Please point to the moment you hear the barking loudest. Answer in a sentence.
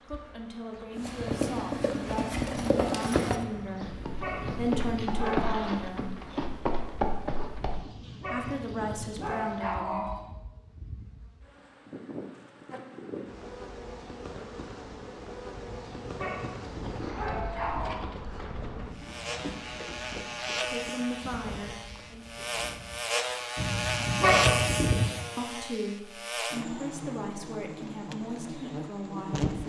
The loudest moment of the barking is at 24 seconds.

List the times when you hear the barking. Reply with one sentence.
You can hear the barking from 3.5 to 5.5 s, from 7.5 to 10.3 s, from 15.5 to 18.1 s and from 23.6 to 25.1 s.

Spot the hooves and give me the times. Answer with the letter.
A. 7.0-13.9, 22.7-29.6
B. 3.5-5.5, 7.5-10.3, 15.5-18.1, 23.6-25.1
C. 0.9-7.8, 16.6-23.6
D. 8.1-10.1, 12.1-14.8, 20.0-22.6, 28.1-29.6
C.